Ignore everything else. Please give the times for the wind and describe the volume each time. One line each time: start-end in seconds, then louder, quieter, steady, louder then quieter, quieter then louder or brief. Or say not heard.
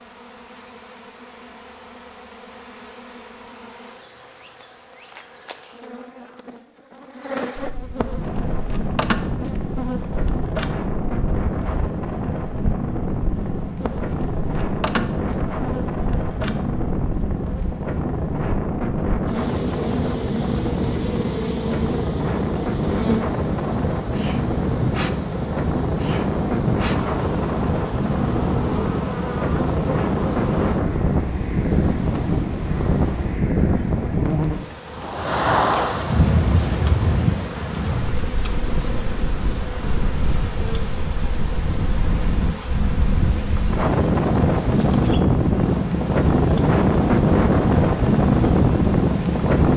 8.2-49.7 louder.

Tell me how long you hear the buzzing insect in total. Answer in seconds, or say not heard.
50 s.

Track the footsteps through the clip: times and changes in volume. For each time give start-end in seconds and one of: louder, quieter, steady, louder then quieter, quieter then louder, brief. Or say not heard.
not heard.